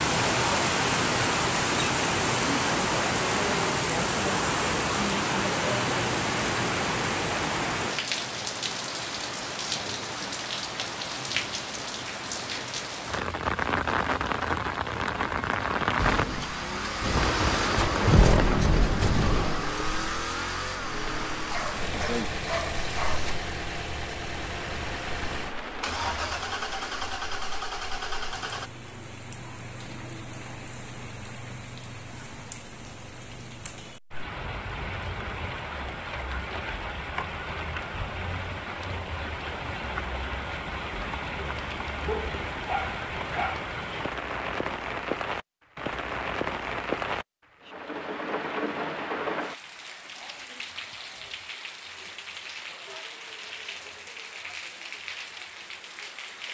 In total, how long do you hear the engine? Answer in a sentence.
You can hear the engine for 13 seconds altogether.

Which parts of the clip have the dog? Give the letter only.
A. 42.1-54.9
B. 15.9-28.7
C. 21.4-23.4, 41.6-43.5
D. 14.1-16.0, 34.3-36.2
C.